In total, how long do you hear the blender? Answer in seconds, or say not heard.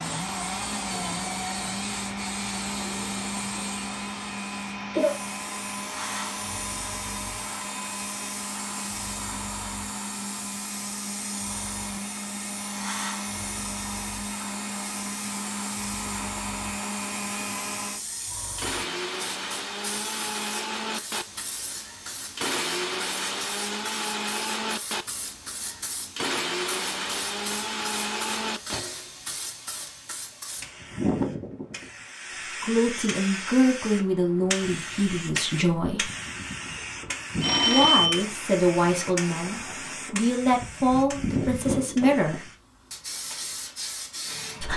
29 s.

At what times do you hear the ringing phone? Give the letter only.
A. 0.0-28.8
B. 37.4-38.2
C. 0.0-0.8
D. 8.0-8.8
B.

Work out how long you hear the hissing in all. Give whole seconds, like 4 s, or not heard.
45 s.